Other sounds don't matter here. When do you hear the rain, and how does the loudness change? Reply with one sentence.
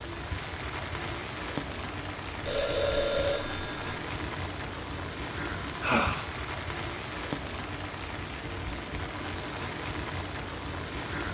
You can hear the rain from 0.0 to 11.2 s, at a steady volume.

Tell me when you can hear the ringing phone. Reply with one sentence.
The ringing phone can be heard from 2.5 to 4.0 s.